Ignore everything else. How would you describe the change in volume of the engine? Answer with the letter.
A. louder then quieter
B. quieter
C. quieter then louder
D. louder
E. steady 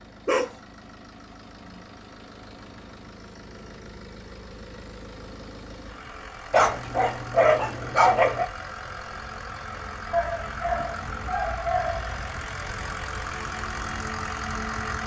D.